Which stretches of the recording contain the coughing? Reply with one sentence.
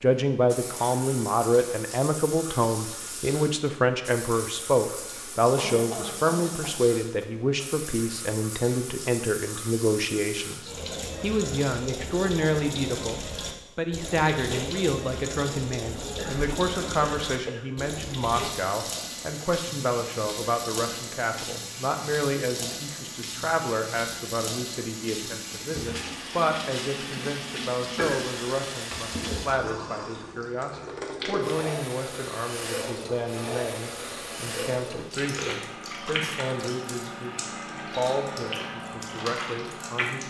The coughing can be heard from 5.5 to 6.8 s, from 16.1 to 17.9 s and from 27.9 to 28.4 s.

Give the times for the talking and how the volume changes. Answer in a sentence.
You can hear the talking from 0.0 to 40.2 s, getting quieter.